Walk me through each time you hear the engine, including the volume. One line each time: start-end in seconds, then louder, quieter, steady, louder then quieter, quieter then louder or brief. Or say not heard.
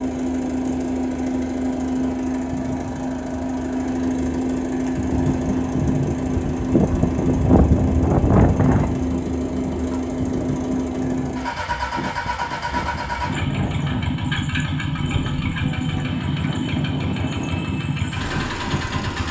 0.0-19.2 steady.